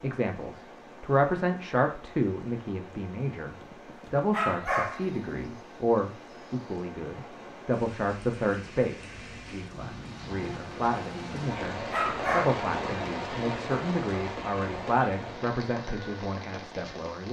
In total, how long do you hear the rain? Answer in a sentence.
You can hear the rain for 17 seconds altogether.